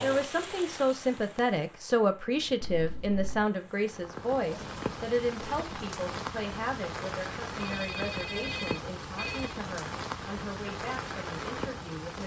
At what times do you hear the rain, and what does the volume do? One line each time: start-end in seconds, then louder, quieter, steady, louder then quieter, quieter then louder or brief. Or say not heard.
0.0-12.2 louder.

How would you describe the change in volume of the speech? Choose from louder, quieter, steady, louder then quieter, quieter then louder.
quieter.